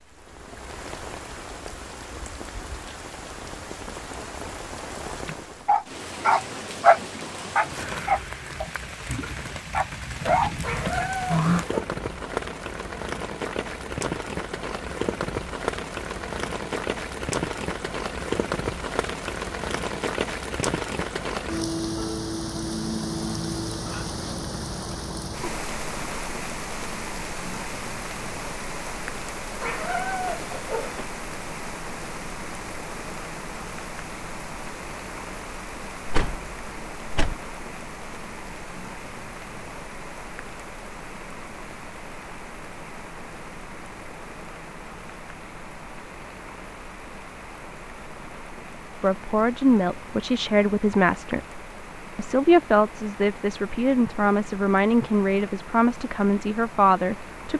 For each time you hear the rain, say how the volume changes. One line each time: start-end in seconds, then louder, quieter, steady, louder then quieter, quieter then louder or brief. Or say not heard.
0.0-57.5 louder then quieter.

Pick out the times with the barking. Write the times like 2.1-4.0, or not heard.
5.2-10.5.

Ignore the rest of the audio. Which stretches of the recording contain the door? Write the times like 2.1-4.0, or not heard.
10.2-11.7, 36.0-37.4.